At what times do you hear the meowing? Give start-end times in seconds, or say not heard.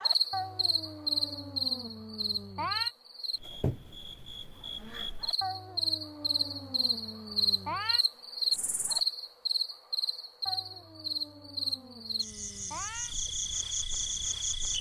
0.3-2.9, 5.4-8.1, 10.4-13.2.